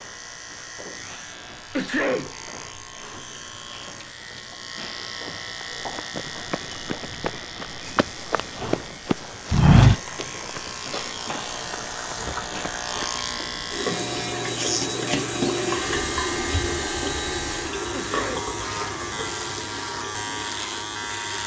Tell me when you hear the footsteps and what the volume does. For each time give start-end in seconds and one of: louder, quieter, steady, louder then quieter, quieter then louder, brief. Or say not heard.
5.6-13.1 louder then quieter.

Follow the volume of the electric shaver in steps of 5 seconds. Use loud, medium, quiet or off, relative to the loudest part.
medium, medium, loud, loud, loud.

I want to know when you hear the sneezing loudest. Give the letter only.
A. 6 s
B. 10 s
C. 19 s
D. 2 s
D.